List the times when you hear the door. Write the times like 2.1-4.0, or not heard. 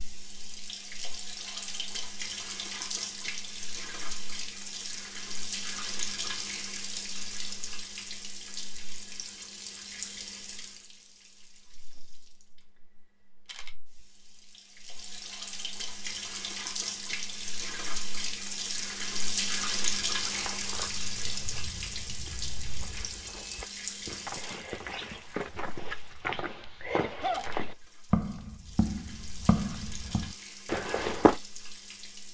not heard.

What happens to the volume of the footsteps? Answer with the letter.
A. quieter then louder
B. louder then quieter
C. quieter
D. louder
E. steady
D.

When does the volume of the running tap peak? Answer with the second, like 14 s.
20 s.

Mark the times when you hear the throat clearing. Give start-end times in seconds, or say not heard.
26.9-27.5.